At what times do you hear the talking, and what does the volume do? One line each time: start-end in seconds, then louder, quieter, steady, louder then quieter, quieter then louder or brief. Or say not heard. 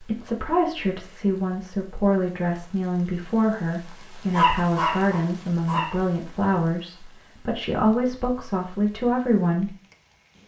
0.0-9.7 steady.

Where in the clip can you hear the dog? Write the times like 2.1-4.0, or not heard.
4.3-6.0.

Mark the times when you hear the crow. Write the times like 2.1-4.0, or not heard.
not heard.